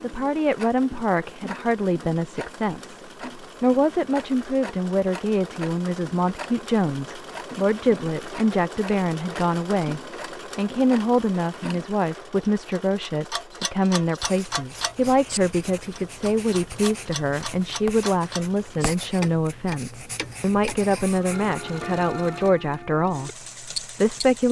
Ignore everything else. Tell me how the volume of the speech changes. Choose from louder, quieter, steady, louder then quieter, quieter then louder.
steady.